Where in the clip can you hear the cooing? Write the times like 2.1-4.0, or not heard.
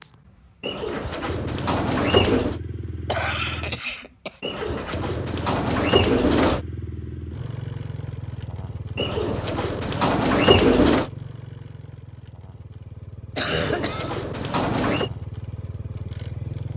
0.6-2.6, 4.4-6.6, 8.9-11.1, 13.5-15.1.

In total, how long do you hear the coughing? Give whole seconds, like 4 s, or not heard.
2 s.